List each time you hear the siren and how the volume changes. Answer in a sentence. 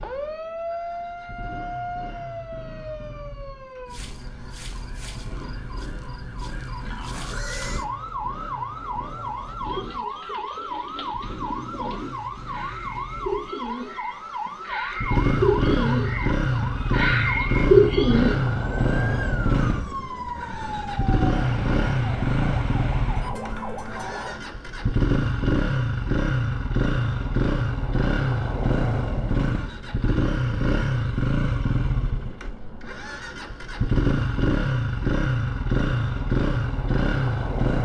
The siren can be heard from 0.0 to 24.4 s, at a steady volume.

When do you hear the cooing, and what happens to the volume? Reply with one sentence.
You can hear the cooing from 9.7 to 18.4 s, getting louder.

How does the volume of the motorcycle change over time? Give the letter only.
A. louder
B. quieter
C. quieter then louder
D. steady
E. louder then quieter
A.